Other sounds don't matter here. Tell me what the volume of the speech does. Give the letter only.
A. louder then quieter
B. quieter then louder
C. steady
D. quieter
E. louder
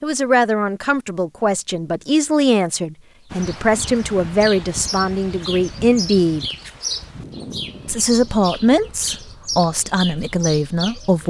C.